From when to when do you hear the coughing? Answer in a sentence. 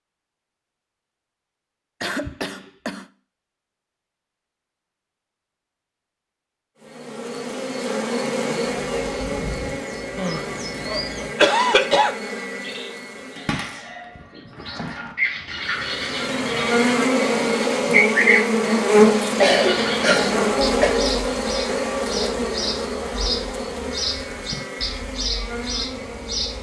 The coughing can be heard from 2.0 to 3.0 s, from 10.2 to 12.2 s and from 19.4 to 21.0 s.